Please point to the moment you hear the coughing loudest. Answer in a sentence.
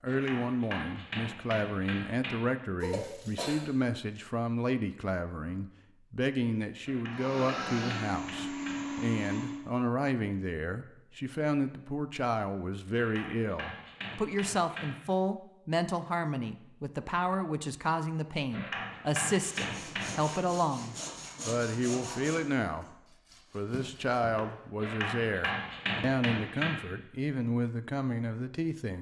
The volume of the coughing peaks at 3 seconds.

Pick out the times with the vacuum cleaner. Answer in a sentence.
You can hear the vacuum cleaner from 7.1 to 9.6 s.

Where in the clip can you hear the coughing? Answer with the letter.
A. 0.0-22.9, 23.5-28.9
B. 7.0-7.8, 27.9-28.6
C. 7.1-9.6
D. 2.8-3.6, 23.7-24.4
D.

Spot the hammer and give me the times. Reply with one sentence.
The hammer can be heard from 0.1 to 2.5 s, from 6.8 to 9.1 s, from 12.9 to 14.9 s, from 18.5 to 20.4 s and from 24.8 to 26.8 s.